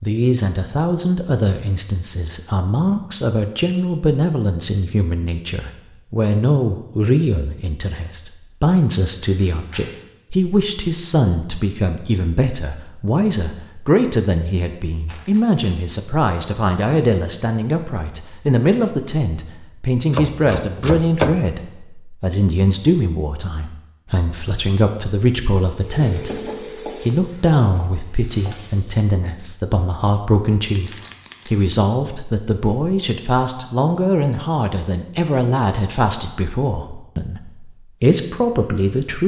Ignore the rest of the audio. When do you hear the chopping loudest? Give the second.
21 s.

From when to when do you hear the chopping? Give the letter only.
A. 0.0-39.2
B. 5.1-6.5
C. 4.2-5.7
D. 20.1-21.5
D.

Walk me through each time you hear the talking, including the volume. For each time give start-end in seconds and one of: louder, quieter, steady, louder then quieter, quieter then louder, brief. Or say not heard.
0.0-39.2 steady.